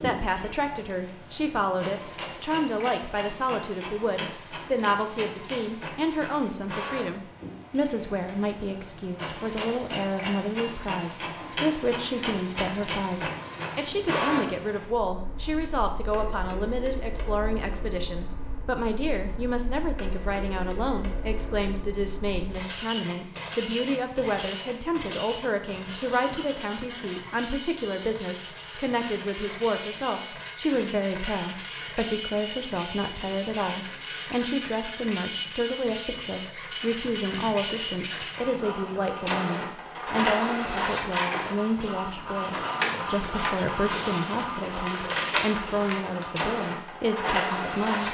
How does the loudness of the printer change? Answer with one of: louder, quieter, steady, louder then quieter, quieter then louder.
louder.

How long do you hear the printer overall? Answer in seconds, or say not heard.
48 s.